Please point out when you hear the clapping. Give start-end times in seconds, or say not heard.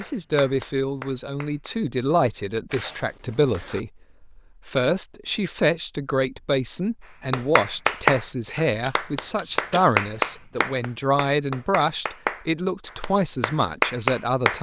0.0-1.8, 7.3-14.5.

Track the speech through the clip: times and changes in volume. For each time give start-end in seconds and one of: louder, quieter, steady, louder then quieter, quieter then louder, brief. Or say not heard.
0.0-14.5 steady.